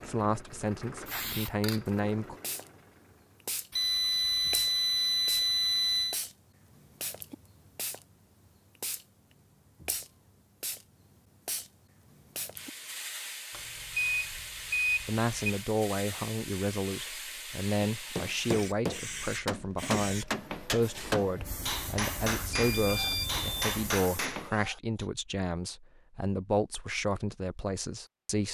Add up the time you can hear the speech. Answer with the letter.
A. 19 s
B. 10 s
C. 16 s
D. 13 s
C.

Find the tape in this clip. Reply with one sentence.
You can't hear the tape here.